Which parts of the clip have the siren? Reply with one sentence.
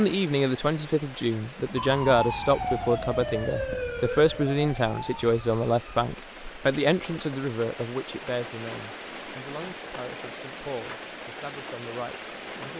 The siren can be heard from 1.8 to 6.0 s.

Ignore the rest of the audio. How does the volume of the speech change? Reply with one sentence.
The volume of the speech goes down.